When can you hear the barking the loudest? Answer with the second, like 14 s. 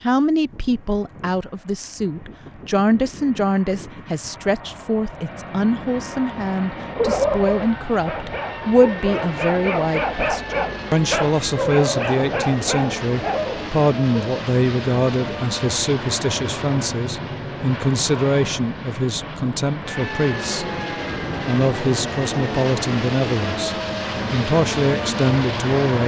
7 s.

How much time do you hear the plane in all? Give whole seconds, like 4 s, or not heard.
26 s.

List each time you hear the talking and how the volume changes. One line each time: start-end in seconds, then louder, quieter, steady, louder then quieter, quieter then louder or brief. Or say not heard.
0.0-20.6 steady
21.4-26.0 quieter then louder.